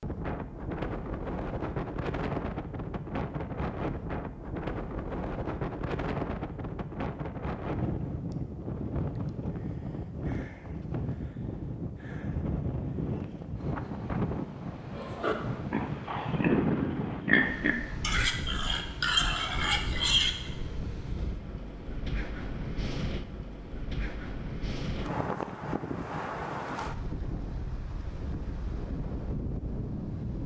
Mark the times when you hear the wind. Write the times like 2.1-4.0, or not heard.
0.0-30.4.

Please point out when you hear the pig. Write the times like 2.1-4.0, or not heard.
14.9-20.5.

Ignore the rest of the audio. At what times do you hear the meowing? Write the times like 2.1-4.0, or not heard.
not heard.